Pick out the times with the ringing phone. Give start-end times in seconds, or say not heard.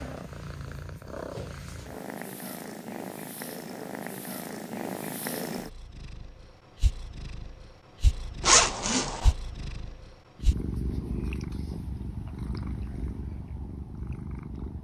not heard.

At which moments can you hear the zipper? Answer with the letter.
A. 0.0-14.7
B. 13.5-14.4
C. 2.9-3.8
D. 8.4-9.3
D.